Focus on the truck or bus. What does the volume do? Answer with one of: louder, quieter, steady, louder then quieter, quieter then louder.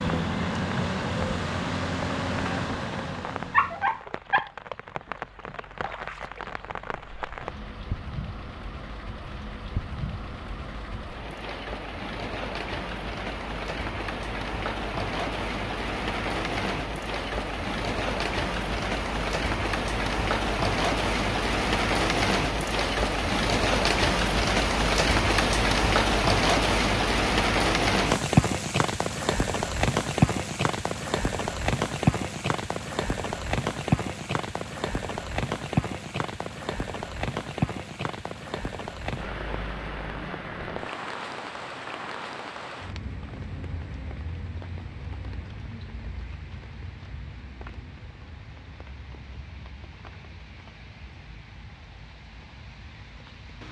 quieter.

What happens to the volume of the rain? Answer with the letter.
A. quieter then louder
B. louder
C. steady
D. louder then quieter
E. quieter
D.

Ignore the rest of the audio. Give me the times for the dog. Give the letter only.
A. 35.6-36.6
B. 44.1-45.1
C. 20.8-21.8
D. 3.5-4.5
D.